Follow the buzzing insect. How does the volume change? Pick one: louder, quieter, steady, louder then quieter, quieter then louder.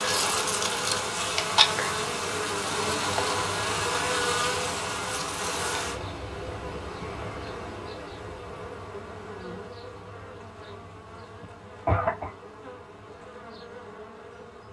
quieter.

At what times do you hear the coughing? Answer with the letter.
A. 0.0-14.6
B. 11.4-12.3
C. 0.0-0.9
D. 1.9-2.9
B.